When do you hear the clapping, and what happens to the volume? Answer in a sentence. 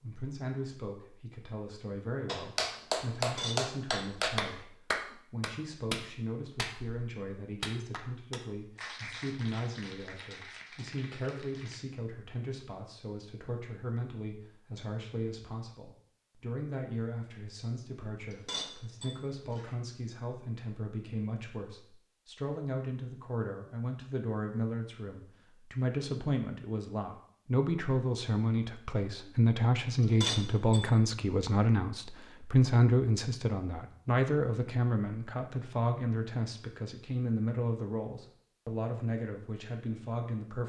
The clapping can be heard from 2.2 to 11.8 s, getting quieter.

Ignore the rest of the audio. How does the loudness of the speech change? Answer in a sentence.
The volume of the speech goes up.